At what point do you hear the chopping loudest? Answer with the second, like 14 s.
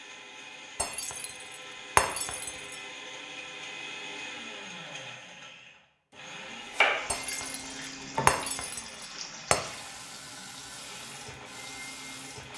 7 s.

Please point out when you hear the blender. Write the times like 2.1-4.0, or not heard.
0.0-12.5.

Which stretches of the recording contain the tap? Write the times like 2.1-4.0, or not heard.
6.9-12.5.